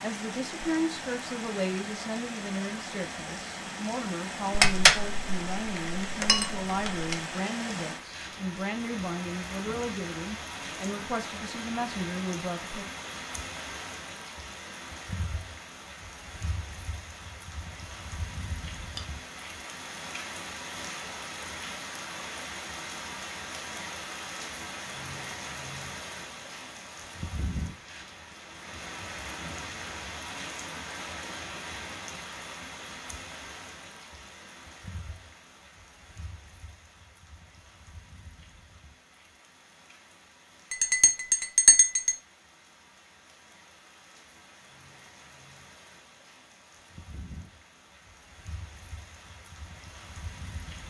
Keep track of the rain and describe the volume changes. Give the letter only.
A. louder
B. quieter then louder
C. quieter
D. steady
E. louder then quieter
C.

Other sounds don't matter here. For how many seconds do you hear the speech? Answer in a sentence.
The speech can be heard for 13 seconds in total.